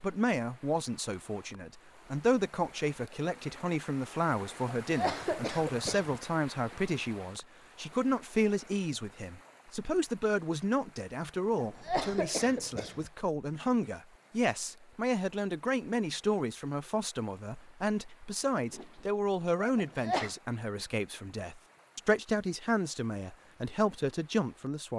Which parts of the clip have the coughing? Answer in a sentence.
The coughing can be heard from 4.8 to 6.2 s, from 11.6 to 13.1 s and from 19.8 to 20.4 s.